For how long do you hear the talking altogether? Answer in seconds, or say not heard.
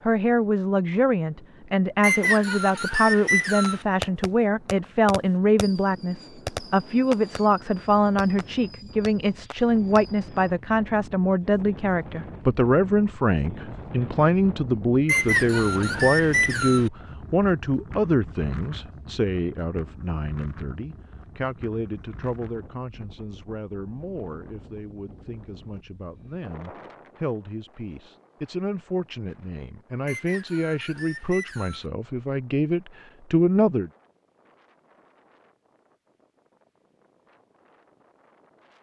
34 s.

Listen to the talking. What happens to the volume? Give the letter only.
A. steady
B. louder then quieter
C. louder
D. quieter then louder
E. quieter
D.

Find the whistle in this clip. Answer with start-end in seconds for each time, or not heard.
2.0-3.9, 15.1-16.9, 30.1-31.9.